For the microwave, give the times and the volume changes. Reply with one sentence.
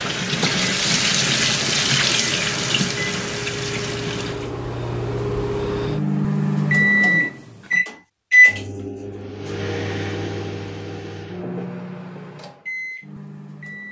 The microwave can be heard from 0.0 to 13.8 s, getting louder then quieter.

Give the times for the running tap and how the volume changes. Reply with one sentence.
You can hear the running tap from 0.0 to 4.5 s, getting quieter.